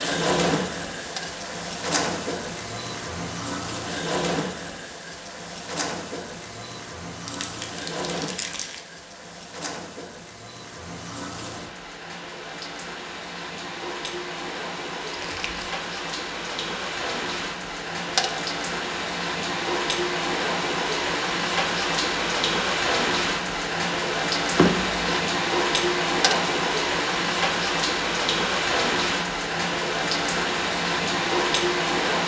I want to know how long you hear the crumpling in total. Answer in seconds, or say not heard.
3 s.